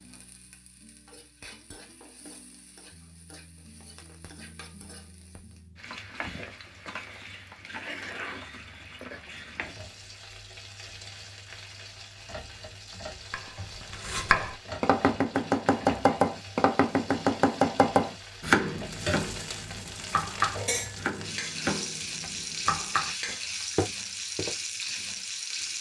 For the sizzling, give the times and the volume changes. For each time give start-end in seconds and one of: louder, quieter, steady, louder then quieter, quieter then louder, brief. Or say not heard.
0.0-25.7 louder.